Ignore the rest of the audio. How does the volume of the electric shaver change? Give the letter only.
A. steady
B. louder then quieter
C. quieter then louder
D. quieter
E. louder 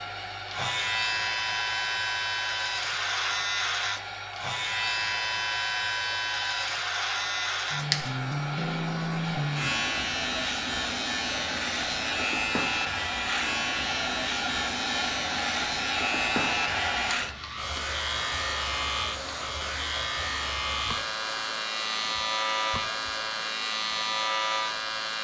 A.